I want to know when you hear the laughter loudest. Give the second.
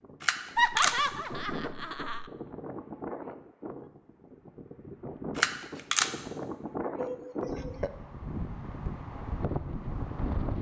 1 s.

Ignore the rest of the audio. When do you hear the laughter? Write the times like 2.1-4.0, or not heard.
0.6-2.3, 7.0-7.9.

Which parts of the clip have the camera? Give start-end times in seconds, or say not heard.
0.2-1.1, 5.3-6.1.